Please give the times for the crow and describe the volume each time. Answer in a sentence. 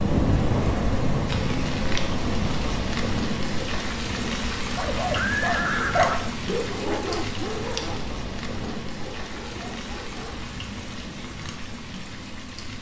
The crow can't be heard in this clip.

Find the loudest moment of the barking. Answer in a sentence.
The volume of the barking peaks at 6 seconds.